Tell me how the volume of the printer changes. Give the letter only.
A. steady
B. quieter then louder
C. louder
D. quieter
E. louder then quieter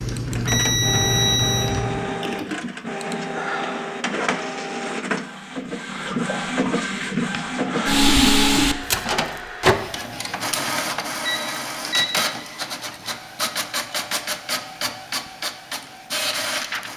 E.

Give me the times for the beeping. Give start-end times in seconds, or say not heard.
0.3-1.8, 11.2-12.2.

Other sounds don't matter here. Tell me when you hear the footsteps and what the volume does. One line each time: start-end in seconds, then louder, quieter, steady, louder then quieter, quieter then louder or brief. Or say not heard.
not heard.